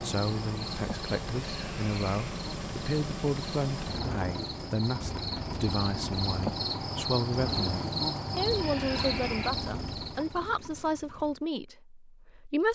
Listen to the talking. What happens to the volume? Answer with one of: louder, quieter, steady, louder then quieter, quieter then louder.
steady.